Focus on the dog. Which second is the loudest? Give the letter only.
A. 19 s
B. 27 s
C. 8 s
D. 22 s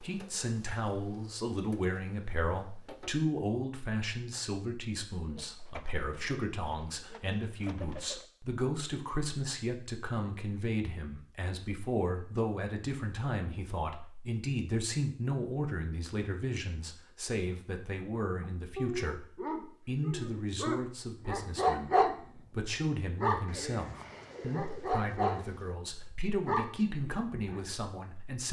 D.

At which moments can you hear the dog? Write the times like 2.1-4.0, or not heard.
18.4-22.1, 22.8-25.4, 26.0-27.8.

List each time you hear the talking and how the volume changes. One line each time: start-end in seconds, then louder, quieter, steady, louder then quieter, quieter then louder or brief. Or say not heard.
0.0-28.4 steady.